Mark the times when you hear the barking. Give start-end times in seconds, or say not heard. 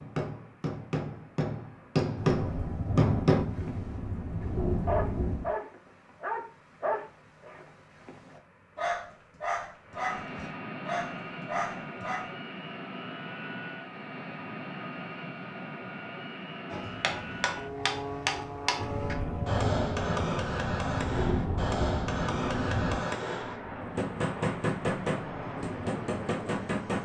3.5-12.3.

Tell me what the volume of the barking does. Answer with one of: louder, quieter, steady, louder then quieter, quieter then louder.
quieter then louder.